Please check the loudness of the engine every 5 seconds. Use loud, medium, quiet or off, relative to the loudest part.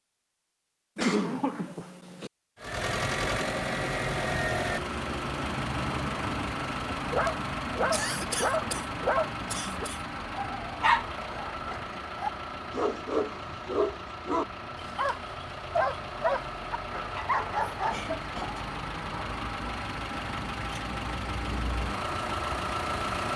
loud, loud, medium, medium, loud.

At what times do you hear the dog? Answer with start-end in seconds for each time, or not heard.
7.0-18.1.